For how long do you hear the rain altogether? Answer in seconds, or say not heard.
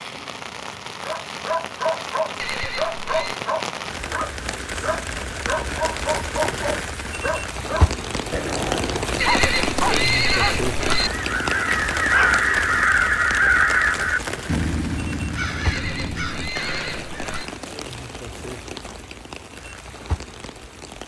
21 s.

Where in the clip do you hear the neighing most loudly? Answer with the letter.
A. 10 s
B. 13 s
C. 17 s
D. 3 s
A.